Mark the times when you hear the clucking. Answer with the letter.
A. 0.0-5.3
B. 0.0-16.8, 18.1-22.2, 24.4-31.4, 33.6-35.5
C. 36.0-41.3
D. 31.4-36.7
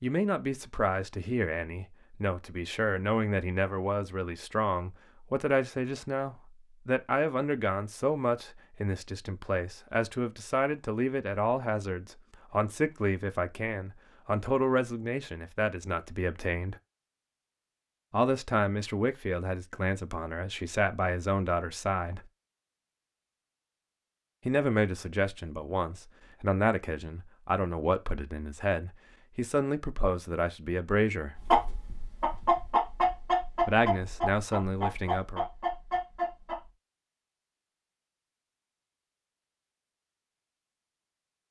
D.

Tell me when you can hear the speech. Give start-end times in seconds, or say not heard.
0.0-16.8, 18.1-22.2, 24.4-31.4, 33.6-35.5.